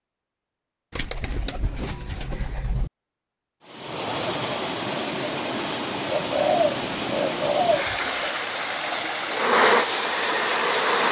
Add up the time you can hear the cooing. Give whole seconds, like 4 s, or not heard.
4 s.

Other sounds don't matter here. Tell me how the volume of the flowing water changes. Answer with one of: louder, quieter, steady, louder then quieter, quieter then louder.
steady.